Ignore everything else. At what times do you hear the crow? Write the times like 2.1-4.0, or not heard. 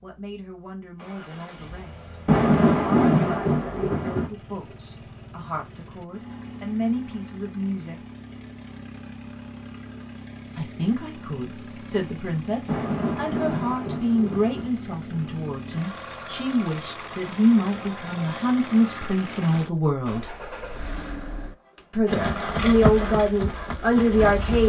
not heard.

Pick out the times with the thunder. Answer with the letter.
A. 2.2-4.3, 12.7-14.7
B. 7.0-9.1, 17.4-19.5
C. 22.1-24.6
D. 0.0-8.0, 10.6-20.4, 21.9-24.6
A.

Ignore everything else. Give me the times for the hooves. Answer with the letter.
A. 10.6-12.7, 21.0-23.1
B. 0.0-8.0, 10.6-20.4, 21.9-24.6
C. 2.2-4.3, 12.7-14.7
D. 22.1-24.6
D.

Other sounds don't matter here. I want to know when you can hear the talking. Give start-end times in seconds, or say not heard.
0.0-8.0, 10.6-20.4, 21.9-24.6.